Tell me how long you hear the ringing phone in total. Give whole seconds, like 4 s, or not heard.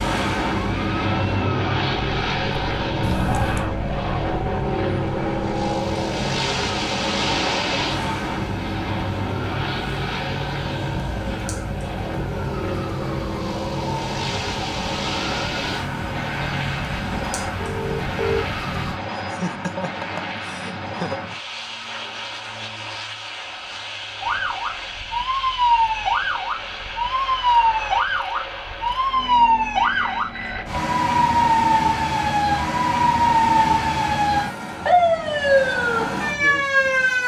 3 s.